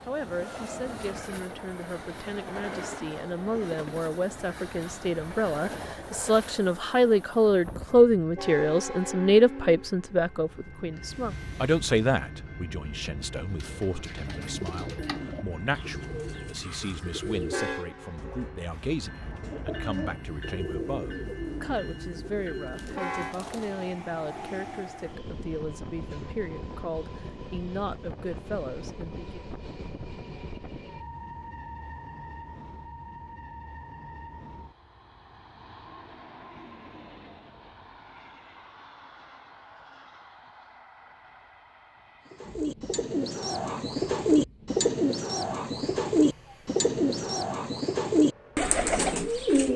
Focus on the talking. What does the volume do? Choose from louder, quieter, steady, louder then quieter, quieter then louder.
louder then quieter.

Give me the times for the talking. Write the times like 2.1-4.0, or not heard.
0.1-29.4.